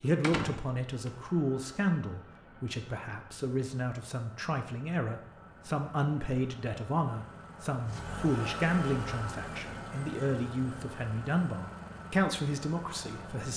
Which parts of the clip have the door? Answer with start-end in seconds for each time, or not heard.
0.2-1.1.